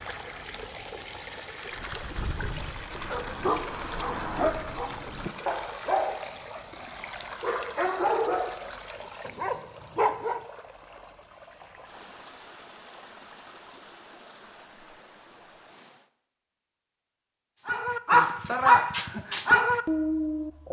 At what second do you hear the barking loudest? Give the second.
19 s.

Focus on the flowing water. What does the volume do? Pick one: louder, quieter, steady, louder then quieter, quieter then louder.
quieter.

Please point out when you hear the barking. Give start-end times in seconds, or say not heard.
1.7-6.8, 7.4-10.4, 17.6-20.6.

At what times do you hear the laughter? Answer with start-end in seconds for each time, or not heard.
not heard.